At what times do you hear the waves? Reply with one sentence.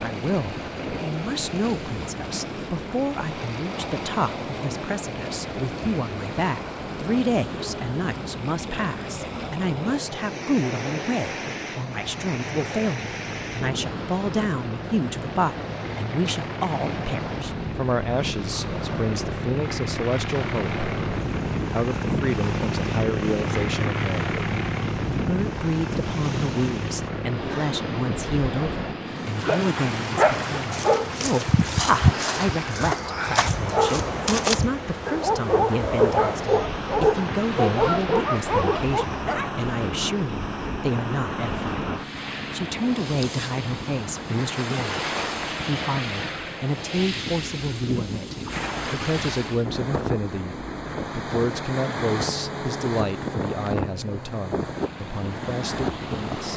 You can hear the waves from 0.0 to 56.5 s.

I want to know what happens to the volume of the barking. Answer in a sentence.
The volume of the barking stays about the same.